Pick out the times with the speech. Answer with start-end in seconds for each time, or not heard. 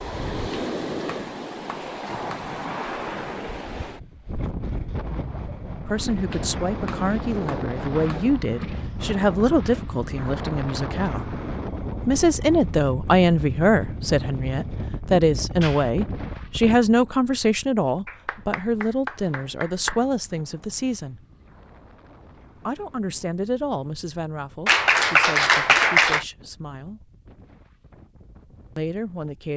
5.8-11.3, 12.1-21.2, 22.6-27.1, 28.8-29.5.